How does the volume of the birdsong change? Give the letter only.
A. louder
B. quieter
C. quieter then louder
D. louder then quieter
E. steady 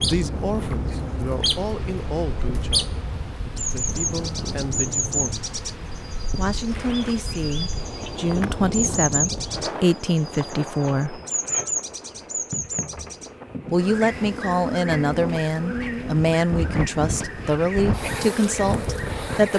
B.